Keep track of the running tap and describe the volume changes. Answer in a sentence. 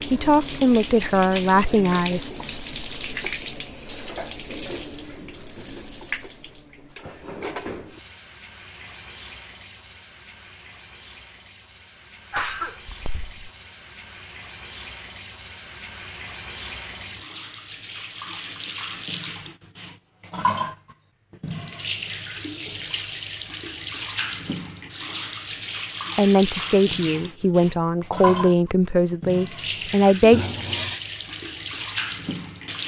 The loudness of the running tap goes down, then up.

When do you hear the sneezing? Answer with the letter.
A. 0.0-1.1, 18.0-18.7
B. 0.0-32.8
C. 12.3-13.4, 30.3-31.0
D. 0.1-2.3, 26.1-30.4
C.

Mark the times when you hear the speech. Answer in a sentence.
You can hear the speech from 0.1 to 2.3 s and from 26.1 to 30.4 s.